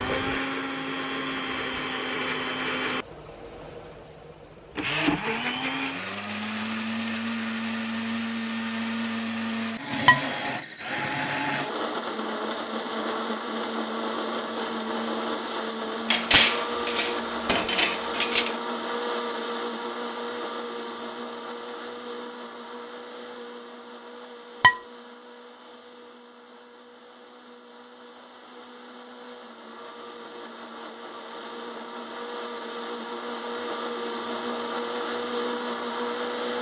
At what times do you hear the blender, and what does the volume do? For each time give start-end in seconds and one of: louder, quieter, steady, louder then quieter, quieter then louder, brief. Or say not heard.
0.0-36.5 quieter then louder.